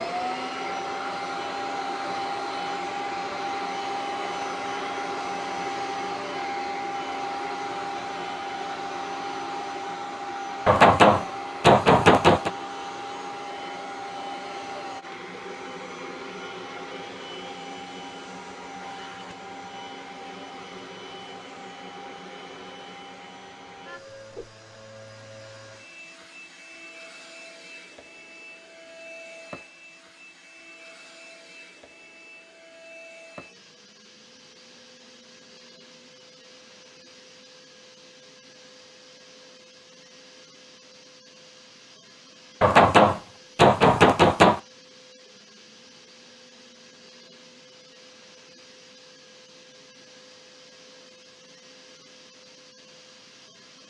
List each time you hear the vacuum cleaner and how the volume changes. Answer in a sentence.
The vacuum cleaner can be heard from 0.0 to 53.8 s, getting quieter.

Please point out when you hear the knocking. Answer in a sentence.
The knocking can be heard from 10.7 to 12.5 s and from 42.6 to 44.6 s.